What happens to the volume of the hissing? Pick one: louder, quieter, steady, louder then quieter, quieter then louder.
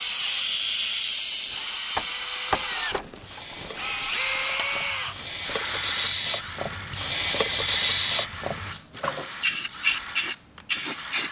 quieter then louder.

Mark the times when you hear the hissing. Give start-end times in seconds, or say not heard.
0.0-11.2.